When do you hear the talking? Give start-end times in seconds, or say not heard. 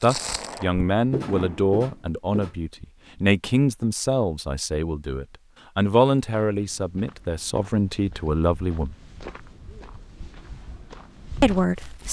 0.0-8.9, 11.4-12.0.